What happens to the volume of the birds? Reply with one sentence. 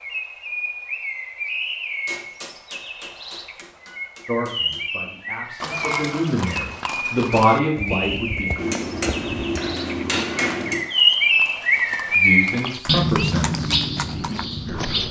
The loudness of the birds goes up.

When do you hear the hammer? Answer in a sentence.
The hammer can be heard from 2.0 to 4.8 s and from 8.6 to 10.9 s.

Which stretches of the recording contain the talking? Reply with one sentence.
The talking can be heard from 4.2 to 8.6 s and from 12.2 to 15.0 s.